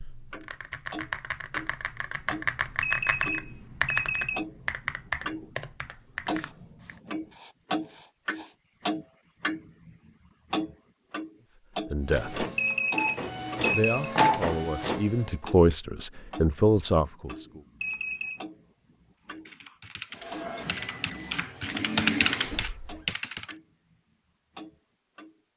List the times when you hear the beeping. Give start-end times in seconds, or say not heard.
2.8-4.5, 12.6-14.1, 17.8-18.4.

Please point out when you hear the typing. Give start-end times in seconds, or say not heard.
0.0-7.0, 19.2-23.6.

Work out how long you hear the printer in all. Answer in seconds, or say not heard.
6 s.